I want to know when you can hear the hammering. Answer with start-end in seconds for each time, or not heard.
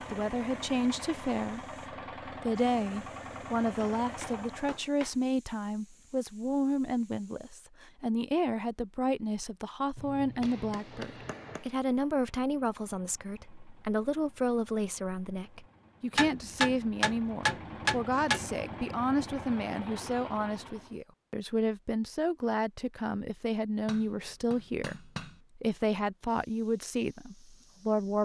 3.8-5.2, 9.9-11.7, 16.1-18.6, 23.9-25.4.